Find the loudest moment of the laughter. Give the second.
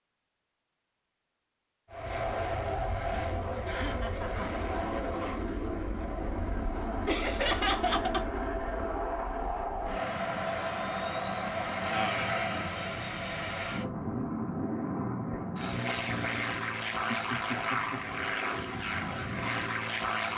8 s.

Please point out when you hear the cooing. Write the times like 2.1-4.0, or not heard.
not heard.